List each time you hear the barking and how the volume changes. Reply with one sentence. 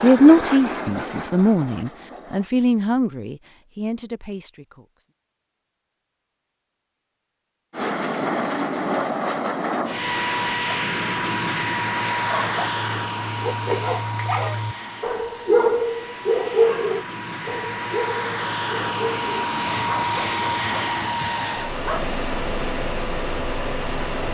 The barking can be heard from 10.4 to 22.2 s, getting louder then quieter.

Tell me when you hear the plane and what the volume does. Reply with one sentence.
You can hear the plane briefly from 0.0 to 2.5 s; and from 7.7 to 24.2 s, getting quieter then louder.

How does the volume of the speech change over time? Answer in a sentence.
The volume of the speech goes down.